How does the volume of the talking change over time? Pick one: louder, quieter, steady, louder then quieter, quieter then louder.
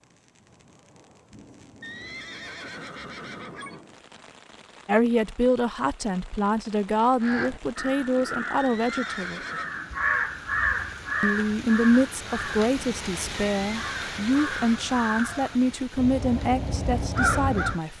steady.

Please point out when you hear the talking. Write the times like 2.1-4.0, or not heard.
4.8-9.4, 11.2-17.9.